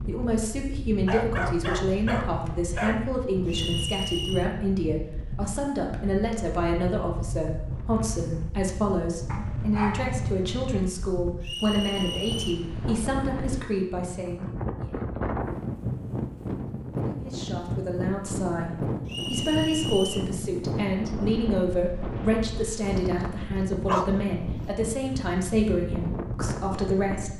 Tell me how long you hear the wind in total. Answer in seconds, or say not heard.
27 s.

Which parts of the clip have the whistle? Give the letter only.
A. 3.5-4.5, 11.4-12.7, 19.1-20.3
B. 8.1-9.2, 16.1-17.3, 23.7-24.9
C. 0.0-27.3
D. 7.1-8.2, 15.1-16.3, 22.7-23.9
A.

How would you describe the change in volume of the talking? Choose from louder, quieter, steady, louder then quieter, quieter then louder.
steady.